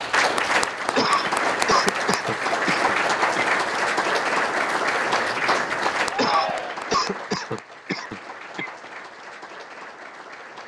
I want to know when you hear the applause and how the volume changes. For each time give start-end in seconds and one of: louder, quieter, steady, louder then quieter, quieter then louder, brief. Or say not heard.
0.0-10.6 quieter.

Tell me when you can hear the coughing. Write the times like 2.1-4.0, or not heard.
0.9-3.5, 6.2-8.7.